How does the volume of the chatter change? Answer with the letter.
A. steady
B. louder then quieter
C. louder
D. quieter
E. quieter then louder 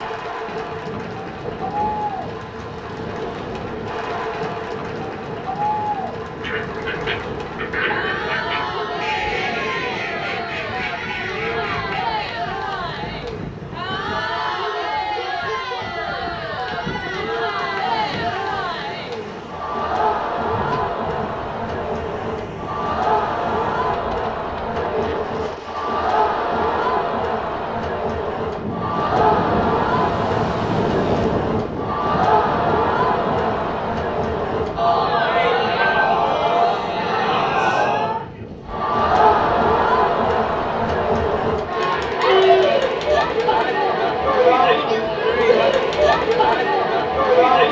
C.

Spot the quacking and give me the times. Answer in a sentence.
You can hear the quacking from 6.4 to 12.2 s.